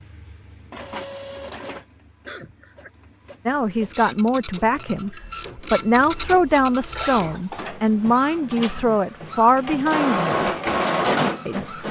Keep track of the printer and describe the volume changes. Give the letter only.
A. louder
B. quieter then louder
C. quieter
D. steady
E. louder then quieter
A.